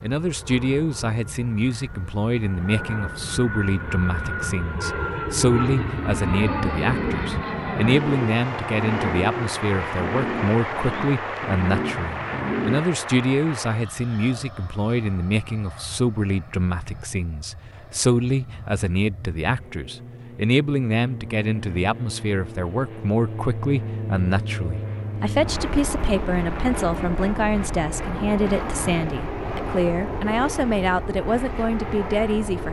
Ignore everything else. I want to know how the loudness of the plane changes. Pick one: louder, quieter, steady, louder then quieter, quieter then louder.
quieter then louder.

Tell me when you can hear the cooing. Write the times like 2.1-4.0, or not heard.
6.7-12.8.